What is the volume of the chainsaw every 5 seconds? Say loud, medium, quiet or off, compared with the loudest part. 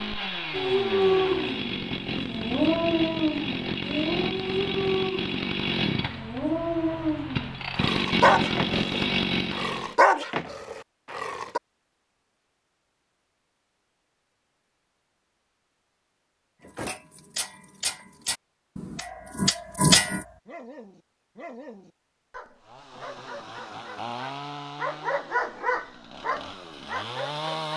loud, loud, off, off, medium, medium.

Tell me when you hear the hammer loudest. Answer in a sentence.
The loudest moment of the hammer is at 20 seconds.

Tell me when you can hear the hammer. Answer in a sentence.
You can hear the hammer from 16.6 to 20.2 s.